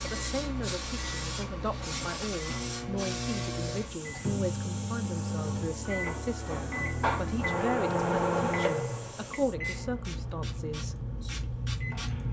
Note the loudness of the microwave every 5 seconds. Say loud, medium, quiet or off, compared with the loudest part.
medium, loud, quiet.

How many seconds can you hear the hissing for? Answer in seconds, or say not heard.
12 s.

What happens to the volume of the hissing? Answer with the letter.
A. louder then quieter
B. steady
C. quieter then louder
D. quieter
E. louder
C.